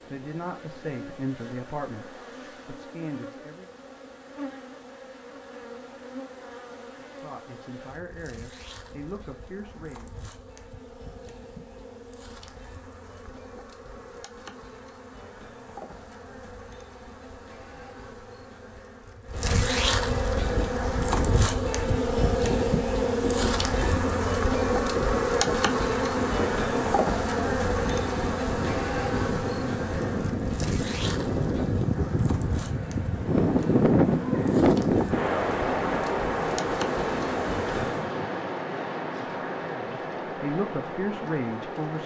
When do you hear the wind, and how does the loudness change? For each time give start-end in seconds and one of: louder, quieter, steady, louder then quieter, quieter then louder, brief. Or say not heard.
20.3-42.0 louder then quieter.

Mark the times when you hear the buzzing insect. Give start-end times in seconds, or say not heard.
0.0-38.1.